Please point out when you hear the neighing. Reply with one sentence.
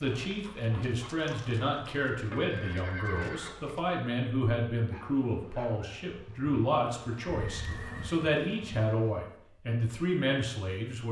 The neighing can be heard from 2.3 to 3.5 s and from 7.2 to 8.2 s.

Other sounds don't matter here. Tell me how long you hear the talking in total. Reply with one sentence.
You can hear the talking for 11 seconds altogether.